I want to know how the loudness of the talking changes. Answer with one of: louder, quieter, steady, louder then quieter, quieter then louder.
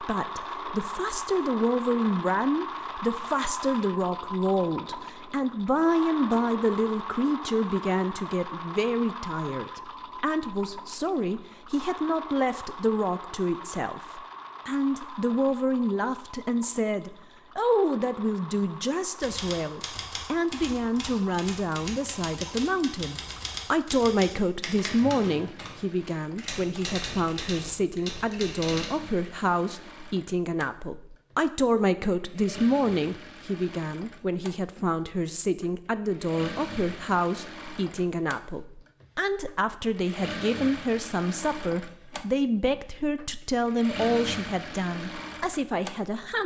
steady.